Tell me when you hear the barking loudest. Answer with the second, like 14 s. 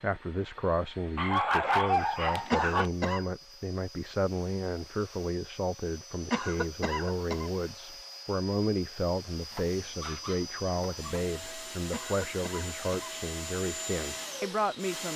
2 s.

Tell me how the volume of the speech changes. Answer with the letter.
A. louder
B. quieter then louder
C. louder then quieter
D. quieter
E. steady
E.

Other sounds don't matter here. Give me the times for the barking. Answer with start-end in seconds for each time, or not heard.
1.1-2.9, 9.5-11.3.